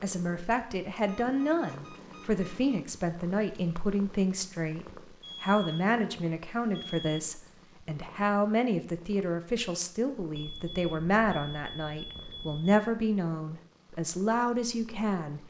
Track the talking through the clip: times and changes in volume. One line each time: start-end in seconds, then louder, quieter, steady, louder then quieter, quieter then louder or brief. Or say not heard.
0.0-15.4 steady.